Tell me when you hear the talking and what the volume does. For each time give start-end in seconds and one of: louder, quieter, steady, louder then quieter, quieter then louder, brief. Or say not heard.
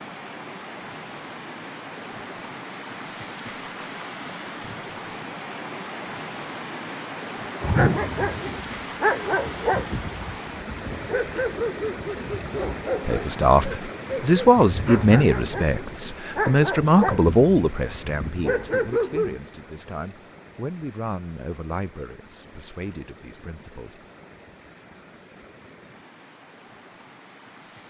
13.1-24.0 quieter.